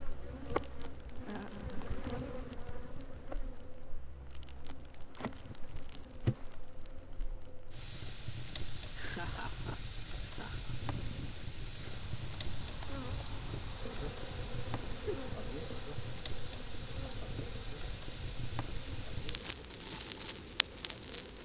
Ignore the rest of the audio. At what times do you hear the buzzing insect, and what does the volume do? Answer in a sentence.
The buzzing insect can be heard from 0.0 to 7.3 s, getting quieter then louder; and from 10.7 to 21.3 s, getting quieter.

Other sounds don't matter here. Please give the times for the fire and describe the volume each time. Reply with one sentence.
The fire can be heard from 0.0 to 21.3 s, getting louder.